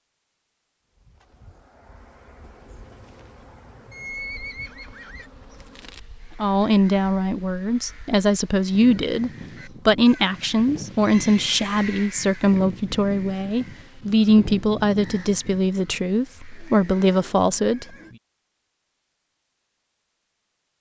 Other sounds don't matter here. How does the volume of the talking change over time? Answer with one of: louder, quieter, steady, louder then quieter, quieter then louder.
steady.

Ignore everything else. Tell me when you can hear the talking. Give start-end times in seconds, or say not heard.
6.4-17.9.